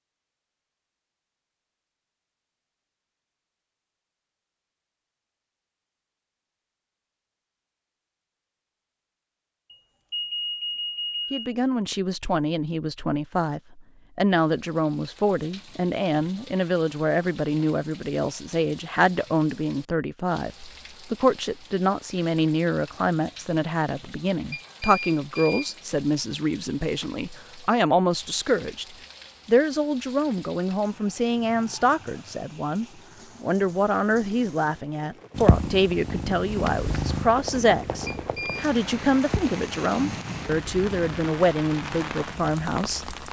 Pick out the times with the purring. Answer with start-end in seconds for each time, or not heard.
35.4-41.2.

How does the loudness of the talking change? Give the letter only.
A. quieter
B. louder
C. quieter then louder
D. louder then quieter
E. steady
E.